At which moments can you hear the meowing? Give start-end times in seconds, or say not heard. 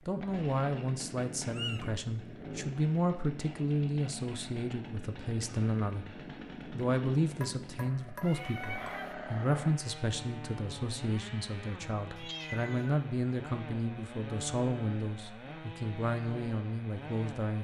1.4-1.9, 8.2-9.2, 12.2-13.1.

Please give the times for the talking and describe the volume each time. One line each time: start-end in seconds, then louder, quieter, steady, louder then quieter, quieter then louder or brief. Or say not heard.
0.1-17.6 steady.